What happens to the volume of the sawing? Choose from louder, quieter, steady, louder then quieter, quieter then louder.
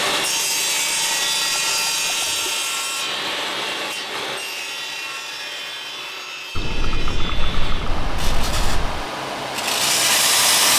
quieter then louder.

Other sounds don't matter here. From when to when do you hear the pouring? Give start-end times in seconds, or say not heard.
0.3-2.5, 6.5-9.1.